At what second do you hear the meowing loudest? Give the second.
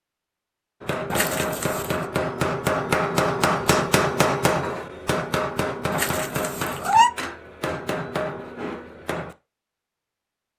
7 s.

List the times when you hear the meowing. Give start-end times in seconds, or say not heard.
1.1-2.0, 5.9-7.1.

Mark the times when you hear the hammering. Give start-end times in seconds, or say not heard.
0.8-9.3.